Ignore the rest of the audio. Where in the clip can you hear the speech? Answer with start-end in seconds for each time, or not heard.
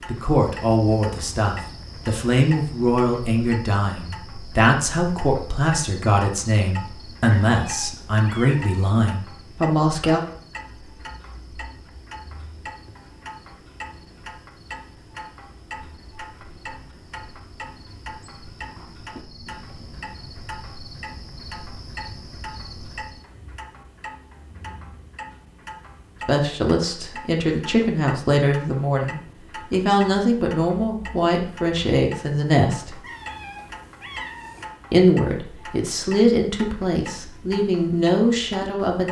0.1-10.2, 26.2-33.0, 34.9-39.0.